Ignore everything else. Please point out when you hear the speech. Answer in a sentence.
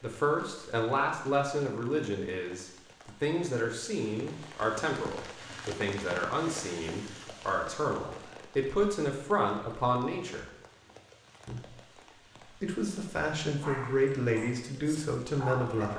The speech can be heard from 0.0 to 10.4 s, from 11.4 to 11.8 s and from 12.4 to 15.9 s.